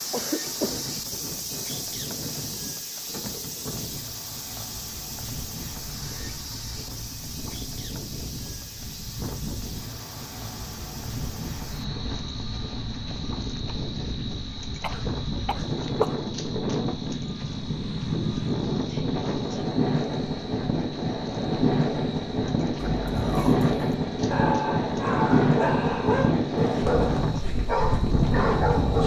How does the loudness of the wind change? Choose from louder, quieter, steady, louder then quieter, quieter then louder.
louder.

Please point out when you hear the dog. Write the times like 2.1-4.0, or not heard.
22.8-29.0.